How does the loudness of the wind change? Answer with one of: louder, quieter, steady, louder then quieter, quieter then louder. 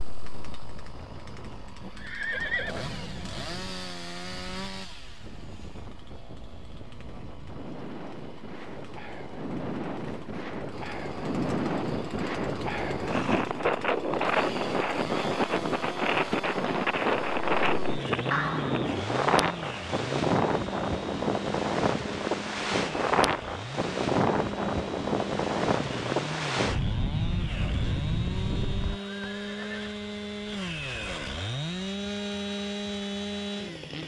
louder.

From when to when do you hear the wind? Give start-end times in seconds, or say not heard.
0.0-29.0.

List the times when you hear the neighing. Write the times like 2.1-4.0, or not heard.
1.8-3.5, 18.3-18.9, 28.8-30.0.